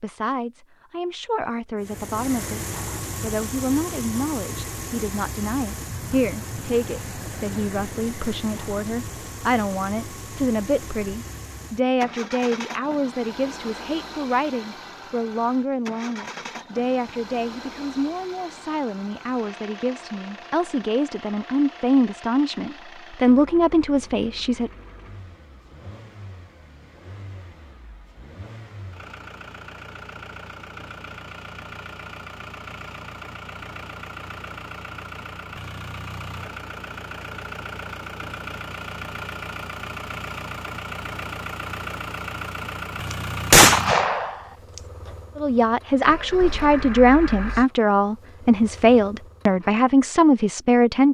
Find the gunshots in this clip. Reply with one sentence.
The gunshots can be heard from 43.5 to 44.4 s.